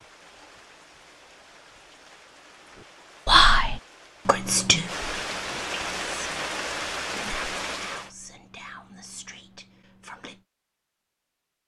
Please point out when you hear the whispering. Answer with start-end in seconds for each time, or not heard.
3.2-10.4.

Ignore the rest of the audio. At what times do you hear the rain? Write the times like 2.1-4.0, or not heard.
0.0-8.1.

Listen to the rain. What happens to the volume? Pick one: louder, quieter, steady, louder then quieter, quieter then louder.
louder.